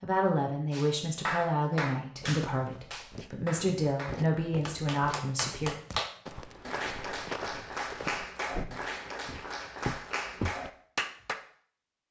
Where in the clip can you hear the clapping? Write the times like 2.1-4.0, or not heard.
0.7-11.3.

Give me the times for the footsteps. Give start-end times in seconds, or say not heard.
2.2-10.7.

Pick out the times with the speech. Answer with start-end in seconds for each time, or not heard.
0.0-5.8.